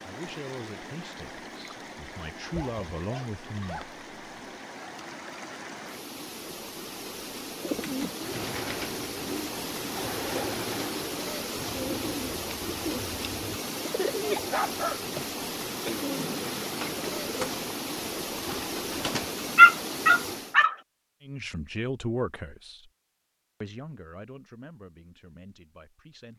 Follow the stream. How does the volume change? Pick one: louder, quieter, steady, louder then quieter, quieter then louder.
louder.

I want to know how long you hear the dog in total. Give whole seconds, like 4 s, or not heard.
4 s.